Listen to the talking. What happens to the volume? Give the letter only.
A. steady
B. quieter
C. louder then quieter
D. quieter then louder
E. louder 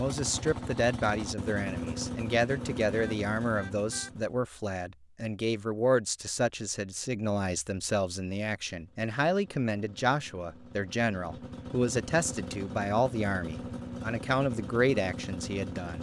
A.